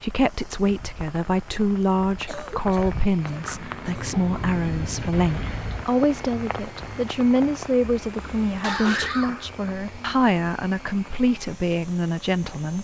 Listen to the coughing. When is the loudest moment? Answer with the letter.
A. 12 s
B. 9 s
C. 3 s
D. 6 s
B.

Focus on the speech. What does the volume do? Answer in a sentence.
The volume of the speech stays about the same.